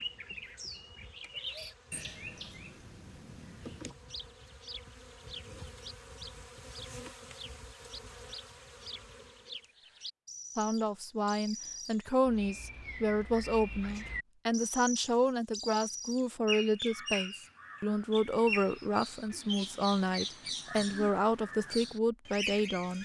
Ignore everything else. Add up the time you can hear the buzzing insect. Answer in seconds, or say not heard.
10 s.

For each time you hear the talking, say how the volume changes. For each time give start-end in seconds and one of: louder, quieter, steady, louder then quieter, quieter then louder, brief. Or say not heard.
10.6-23.0 steady.